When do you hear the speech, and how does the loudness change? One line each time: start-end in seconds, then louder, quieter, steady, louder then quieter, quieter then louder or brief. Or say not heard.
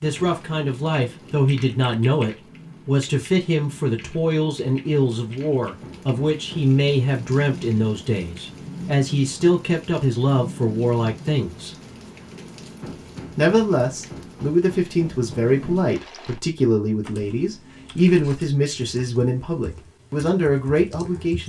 0.0-11.8 steady
13.3-21.4 steady.